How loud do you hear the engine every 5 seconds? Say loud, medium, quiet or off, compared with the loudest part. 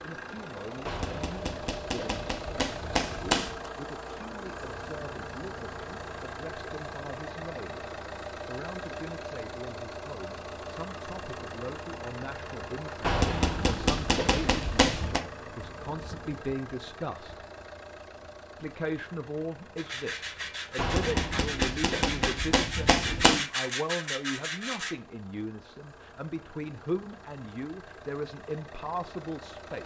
loud, loud, loud, medium, quiet, medium.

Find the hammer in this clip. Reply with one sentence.
The hammer can be heard from 0.8 to 3.7 s, from 13.0 to 15.2 s and from 20.8 to 23.4 s.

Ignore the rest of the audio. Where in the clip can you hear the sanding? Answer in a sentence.
The sanding can be heard from 19.8 to 24.9 s.